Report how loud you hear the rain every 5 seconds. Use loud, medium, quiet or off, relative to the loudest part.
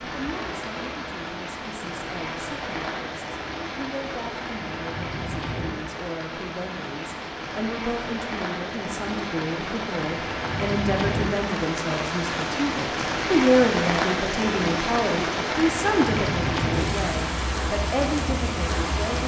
medium, medium, loud, loud.